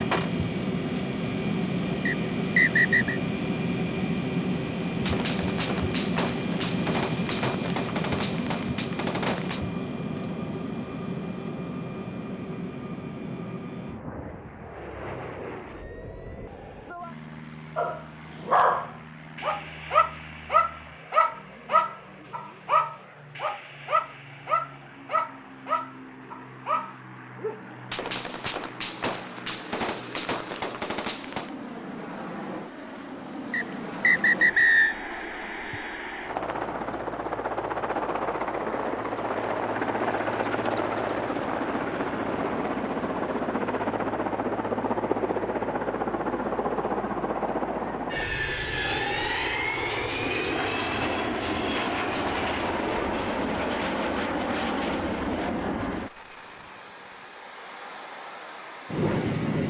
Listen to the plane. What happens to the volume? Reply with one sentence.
The loudness of the plane goes down, then up.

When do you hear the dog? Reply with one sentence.
You can hear the dog from 17.8 to 27.6 s.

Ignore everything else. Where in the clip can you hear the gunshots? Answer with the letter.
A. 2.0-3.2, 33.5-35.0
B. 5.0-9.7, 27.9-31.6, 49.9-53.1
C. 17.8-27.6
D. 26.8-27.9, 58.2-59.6
B.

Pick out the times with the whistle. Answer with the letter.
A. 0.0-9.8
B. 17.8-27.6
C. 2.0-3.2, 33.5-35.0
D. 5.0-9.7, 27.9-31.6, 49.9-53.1
C.